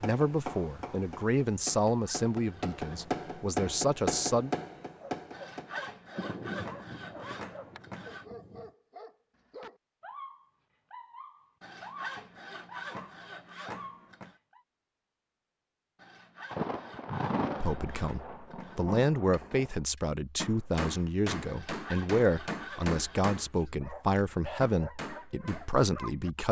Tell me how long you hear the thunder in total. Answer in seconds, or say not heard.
6 s.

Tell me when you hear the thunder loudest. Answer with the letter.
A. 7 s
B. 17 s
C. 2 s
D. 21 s
B.